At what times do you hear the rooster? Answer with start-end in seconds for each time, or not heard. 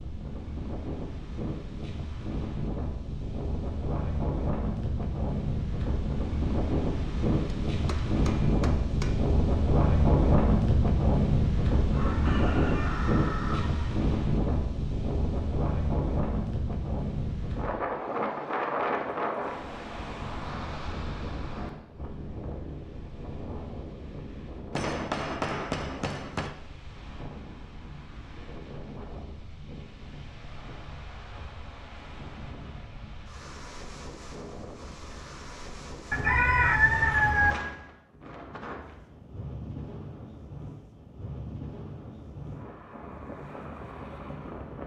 11.9-13.9, 36.1-37.5.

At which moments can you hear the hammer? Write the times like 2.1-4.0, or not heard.
7.7-9.2, 24.7-26.6.